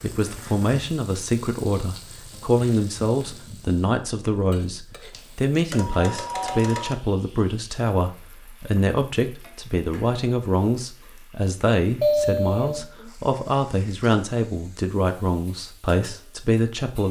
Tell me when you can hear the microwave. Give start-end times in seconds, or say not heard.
not heard.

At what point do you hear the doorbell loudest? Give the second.
12 s.